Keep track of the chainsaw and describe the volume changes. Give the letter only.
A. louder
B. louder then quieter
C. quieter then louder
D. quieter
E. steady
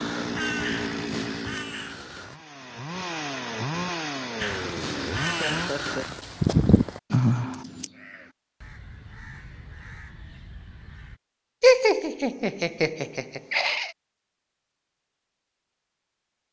C.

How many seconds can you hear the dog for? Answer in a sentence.
The dog can't be heard in this clip.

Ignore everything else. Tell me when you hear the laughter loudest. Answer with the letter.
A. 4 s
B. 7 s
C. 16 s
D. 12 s
D.